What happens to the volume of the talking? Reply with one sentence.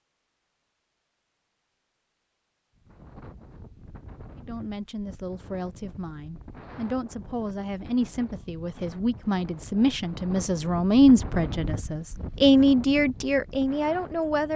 The loudness of the talking goes up.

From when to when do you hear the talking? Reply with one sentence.
The talking can be heard from 4.3 to 14.5 s.